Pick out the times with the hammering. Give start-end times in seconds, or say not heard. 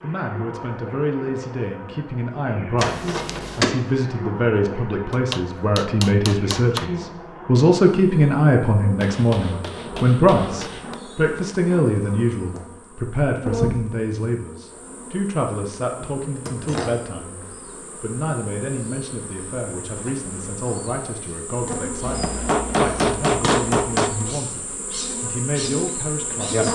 5.1-6.8, 9.0-10.9, 22.0-24.2.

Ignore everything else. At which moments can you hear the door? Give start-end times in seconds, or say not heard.
2.8-3.8.